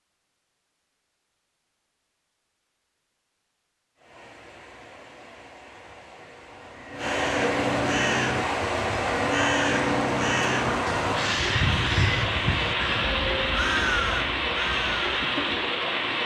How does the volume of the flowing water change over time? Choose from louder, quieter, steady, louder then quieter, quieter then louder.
louder.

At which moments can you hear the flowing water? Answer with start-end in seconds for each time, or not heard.
4.0-16.2.